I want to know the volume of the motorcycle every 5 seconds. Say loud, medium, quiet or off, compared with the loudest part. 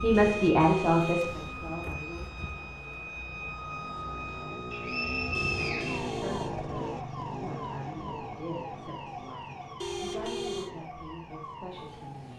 medium, loud, quiet.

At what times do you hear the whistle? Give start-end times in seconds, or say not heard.
4.7-6.2.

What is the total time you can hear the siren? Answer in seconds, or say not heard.
12 s.